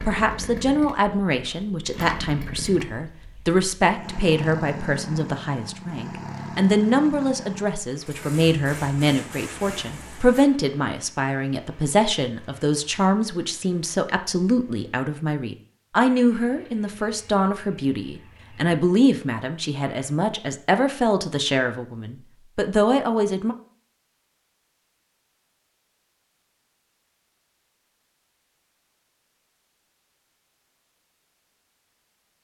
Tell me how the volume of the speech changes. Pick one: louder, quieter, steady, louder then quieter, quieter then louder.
steady.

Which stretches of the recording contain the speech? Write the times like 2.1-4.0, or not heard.
0.0-23.6.